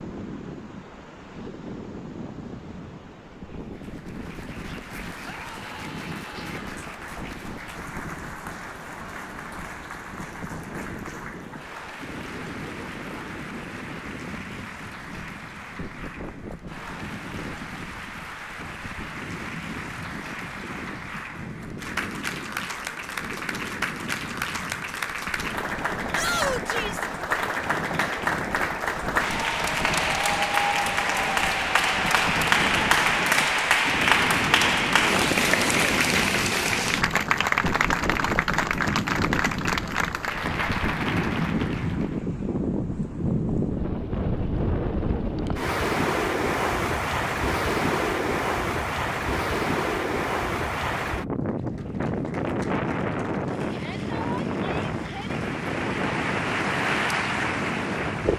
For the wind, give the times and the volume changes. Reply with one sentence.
The wind can be heard from 0.0 to 58.3 s, getting louder.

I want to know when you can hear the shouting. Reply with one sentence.
The shouting can be heard from 5.2 to 6.8 s, from 26.1 to 27.1 s and from 53.7 to 55.4 s.